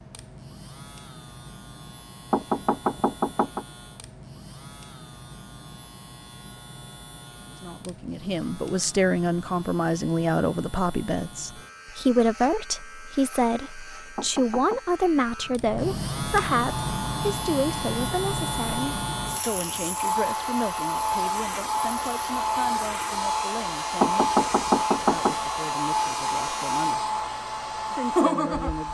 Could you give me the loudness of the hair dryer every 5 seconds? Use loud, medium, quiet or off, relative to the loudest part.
off, off, off, medium, loud, loud.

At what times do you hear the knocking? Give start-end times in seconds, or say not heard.
2.3-3.6, 14.2-14.8, 24.0-25.4.